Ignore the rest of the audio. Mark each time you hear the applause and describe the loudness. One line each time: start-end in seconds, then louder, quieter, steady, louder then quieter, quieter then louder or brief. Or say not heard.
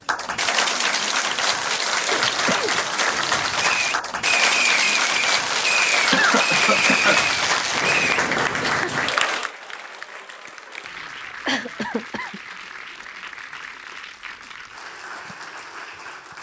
0.1-16.3 quieter.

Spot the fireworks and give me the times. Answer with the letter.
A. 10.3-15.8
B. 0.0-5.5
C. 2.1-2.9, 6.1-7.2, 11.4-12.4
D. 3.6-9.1
D.